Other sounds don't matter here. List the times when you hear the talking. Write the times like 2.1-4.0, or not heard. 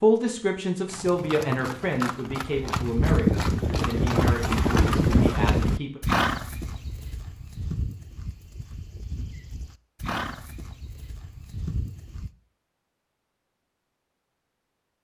0.0-6.0.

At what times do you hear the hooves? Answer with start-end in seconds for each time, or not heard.
0.8-12.3.